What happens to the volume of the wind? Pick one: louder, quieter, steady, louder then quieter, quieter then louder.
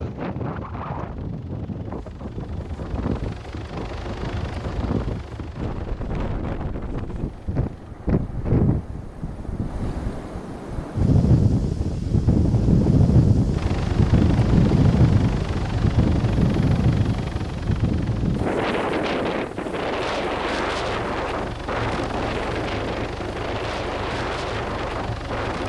louder then quieter.